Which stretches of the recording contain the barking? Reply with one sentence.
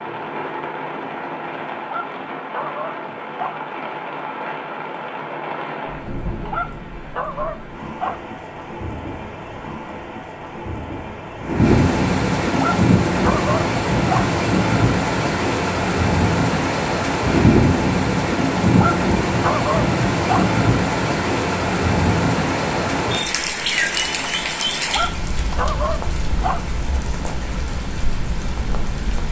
The barking can be heard from 1.8 to 3.5 s, from 6.5 to 8.2 s, from 12.5 to 14.2 s, from 18.7 to 20.4 s and from 24.9 to 26.6 s.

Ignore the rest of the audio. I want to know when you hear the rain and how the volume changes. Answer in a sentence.
The rain can be heard from 0.0 to 29.2 s, getting louder then quieter.